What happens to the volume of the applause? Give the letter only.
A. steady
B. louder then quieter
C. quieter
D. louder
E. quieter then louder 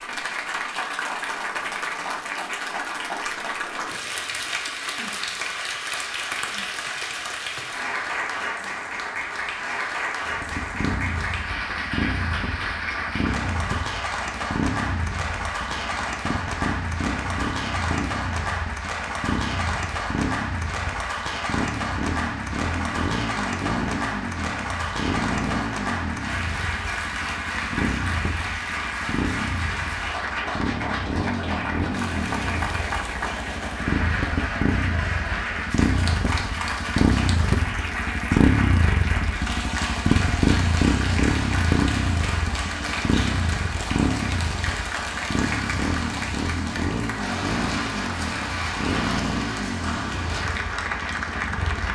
A.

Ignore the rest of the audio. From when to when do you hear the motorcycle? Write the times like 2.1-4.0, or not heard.
10.2-51.8.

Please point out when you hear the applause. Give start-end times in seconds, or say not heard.
0.0-51.8.